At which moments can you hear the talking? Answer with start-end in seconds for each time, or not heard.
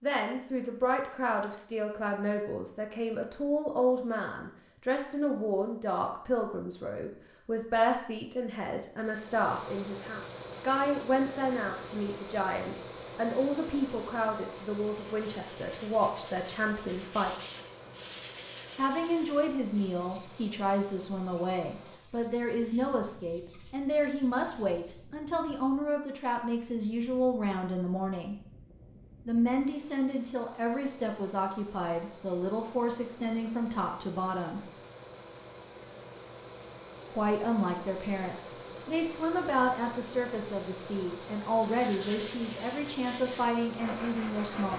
0.0-17.4, 18.8-28.4, 29.2-34.6, 37.1-44.7.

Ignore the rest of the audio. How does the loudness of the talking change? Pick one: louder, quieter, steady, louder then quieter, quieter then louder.
steady.